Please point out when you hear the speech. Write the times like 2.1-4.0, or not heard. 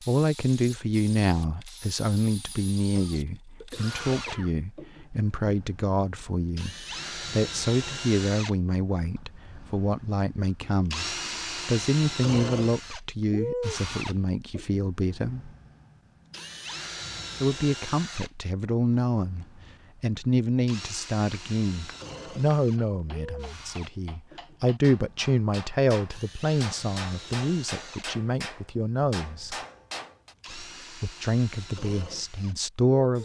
0.0-15.5, 17.4-29.6, 30.5-33.2.